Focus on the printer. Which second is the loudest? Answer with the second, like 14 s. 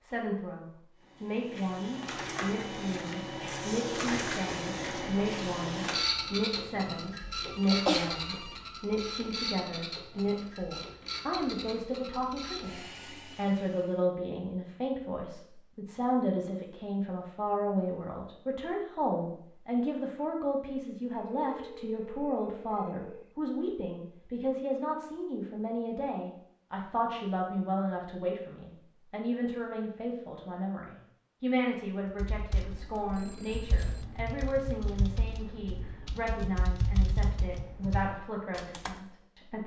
6 s.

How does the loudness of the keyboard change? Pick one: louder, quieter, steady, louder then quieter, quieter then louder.
louder then quieter.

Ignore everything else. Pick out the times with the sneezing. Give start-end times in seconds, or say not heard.
7.7-8.2.